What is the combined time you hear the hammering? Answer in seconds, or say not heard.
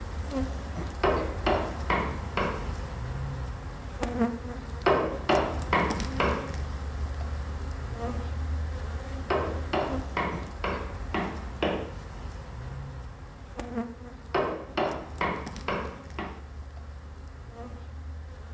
8 s.